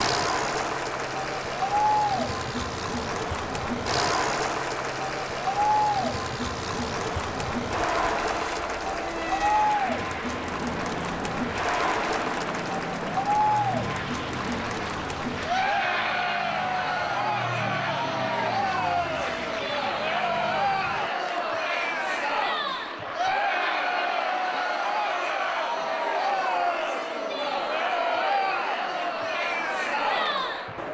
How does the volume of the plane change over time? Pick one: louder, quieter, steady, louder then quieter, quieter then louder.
steady.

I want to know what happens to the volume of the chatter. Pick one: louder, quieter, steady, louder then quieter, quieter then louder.
steady.